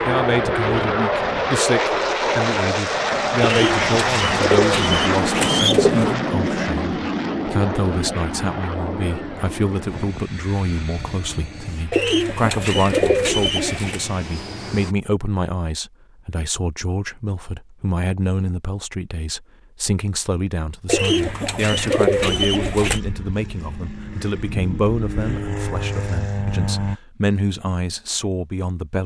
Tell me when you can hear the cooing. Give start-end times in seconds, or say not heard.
3.4-6.2, 11.9-14.0, 20.9-23.0.